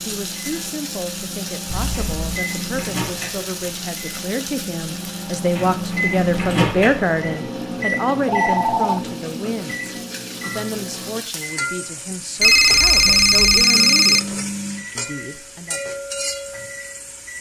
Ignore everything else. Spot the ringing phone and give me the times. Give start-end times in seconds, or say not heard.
1.6-2.2, 8.2-9.0, 12.4-14.2.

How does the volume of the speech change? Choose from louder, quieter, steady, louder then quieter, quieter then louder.
louder then quieter.